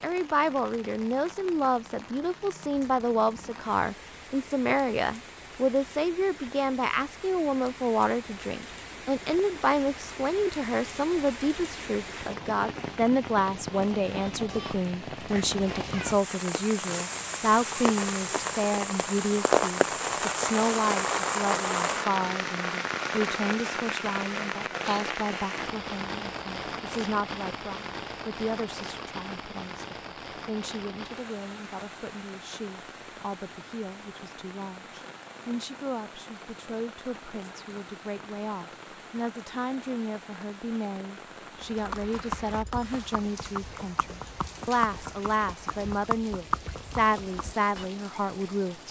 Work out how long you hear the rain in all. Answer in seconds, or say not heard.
49 s.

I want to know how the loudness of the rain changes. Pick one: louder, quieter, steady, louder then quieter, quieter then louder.
louder then quieter.